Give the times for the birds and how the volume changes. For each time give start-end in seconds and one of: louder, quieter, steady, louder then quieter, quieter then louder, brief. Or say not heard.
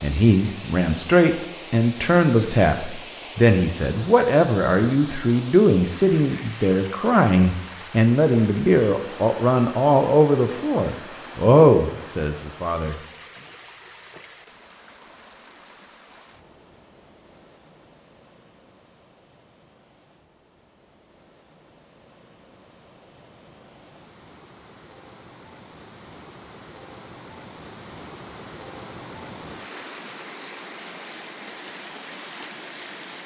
not heard.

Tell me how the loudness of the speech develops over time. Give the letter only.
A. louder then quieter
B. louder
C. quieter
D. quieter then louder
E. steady
E.